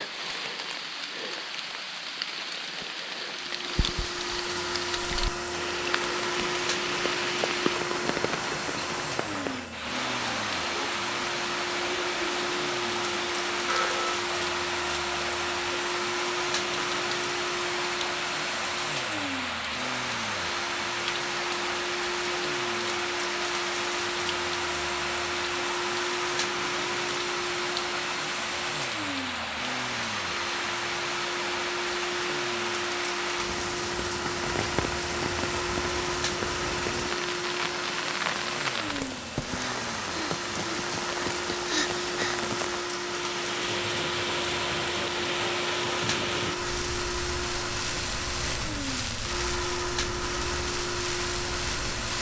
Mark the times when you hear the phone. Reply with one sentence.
You can hear the phone from 13.7 to 14.2 s.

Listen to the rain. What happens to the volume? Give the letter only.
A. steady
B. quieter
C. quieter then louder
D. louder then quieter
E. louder
A.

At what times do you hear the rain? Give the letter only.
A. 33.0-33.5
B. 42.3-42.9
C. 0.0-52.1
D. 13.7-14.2
C.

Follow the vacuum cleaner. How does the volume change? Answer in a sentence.
The loudness of the vacuum cleaner stays about the same.